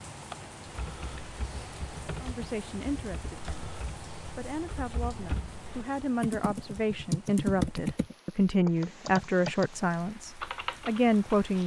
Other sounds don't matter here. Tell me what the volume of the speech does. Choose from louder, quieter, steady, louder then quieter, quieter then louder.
louder.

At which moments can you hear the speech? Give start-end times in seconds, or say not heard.
2.2-11.6.